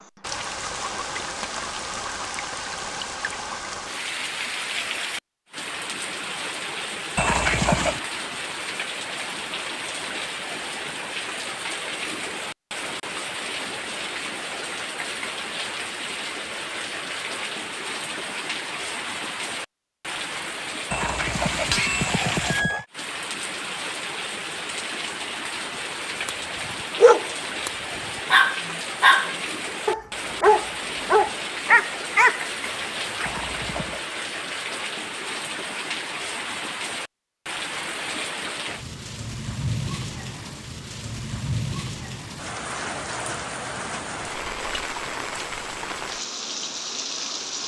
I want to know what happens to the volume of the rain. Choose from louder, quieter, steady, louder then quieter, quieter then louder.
steady.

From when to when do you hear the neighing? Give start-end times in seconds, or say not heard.
7.2-8.0, 20.9-22.9, 33.2-34.0.